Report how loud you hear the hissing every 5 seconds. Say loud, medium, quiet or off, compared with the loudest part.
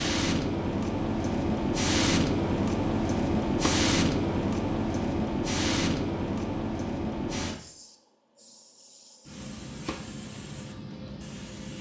loud, medium, quiet.